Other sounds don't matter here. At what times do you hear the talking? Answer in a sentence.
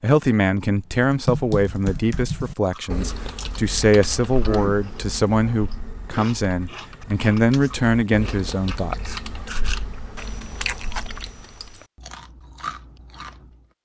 You can hear the talking from 0.0 to 9.2 s.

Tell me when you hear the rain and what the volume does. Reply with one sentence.
The rain can't be heard in this clip.